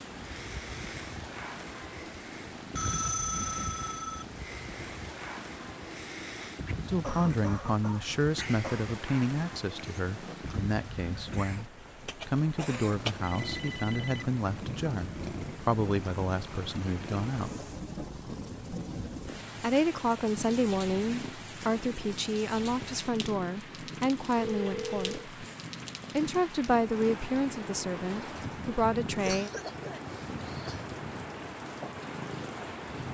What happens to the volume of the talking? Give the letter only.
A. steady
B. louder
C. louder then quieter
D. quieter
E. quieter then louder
A.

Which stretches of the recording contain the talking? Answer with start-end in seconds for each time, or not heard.
6.8-17.5, 19.6-25.2, 26.1-29.5.